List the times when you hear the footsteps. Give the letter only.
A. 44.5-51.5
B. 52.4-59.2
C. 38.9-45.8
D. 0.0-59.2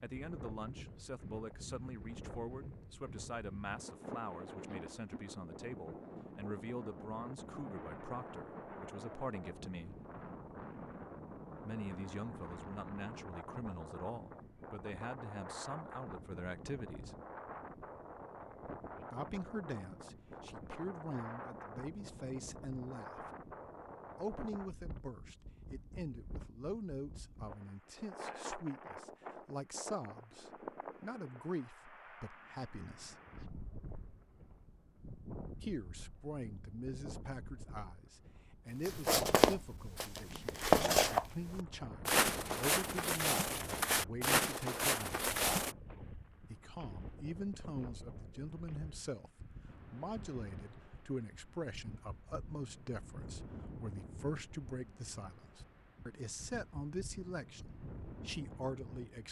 C.